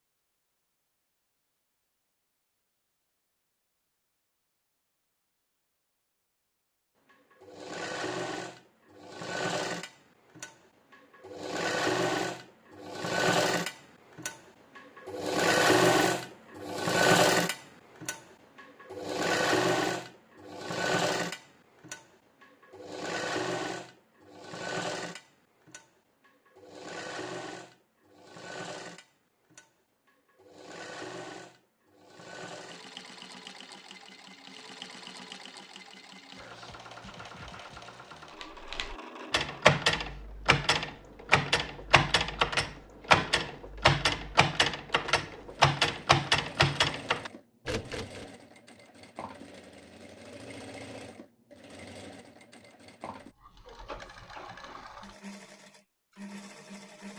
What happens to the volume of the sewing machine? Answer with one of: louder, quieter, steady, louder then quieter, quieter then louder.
quieter.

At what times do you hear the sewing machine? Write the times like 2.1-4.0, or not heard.
7.1-57.1.